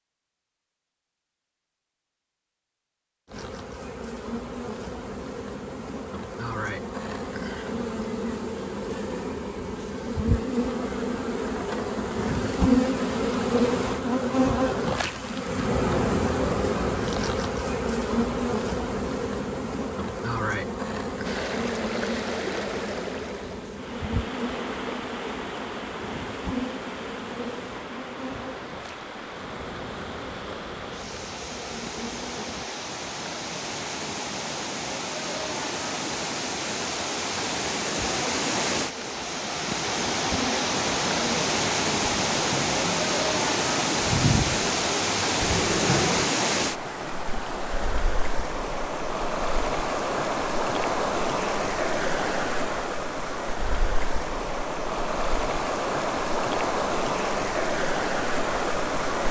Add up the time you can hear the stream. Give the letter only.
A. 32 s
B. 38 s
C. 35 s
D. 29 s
B.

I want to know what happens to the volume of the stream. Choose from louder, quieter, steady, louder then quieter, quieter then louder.
louder.